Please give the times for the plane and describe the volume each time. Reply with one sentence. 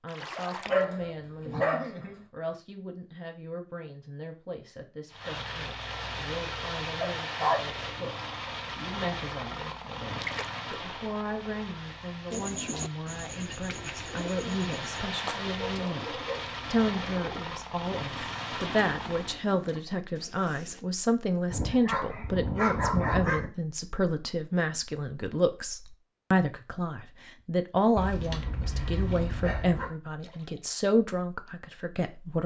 The plane can be heard from 5.1 to 19.4 s, getting quieter then louder.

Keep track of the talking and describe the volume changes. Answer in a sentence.
The volume of the talking goes up.